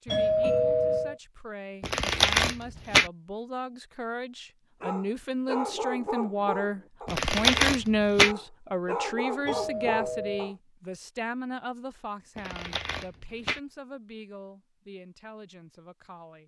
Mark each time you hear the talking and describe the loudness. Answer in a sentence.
You can hear the talking from 0.0 to 16.4 s, getting louder then quieter.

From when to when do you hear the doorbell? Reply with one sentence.
You can hear the doorbell from 0.1 to 1.2 s and from 9.4 to 10.5 s.